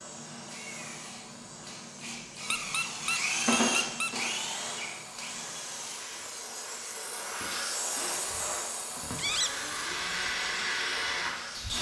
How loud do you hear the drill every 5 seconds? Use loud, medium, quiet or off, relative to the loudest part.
loud, medium, loud.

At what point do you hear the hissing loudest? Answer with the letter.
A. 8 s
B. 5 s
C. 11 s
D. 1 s
A.